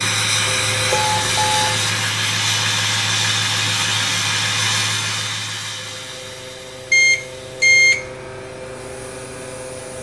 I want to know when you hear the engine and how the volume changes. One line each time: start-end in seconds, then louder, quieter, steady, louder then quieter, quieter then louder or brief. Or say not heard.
0.0-9.9 quieter.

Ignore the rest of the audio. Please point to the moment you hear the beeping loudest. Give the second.
8 s.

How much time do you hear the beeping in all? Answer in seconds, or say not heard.
2 s.